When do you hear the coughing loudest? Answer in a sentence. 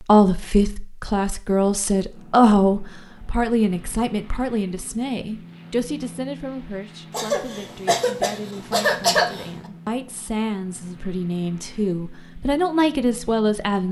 The volume of the coughing peaks at 9 seconds.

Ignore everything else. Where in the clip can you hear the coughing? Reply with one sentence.
The coughing can be heard from 7.1 to 9.5 s.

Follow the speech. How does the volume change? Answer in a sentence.
The loudness of the speech goes down, then up.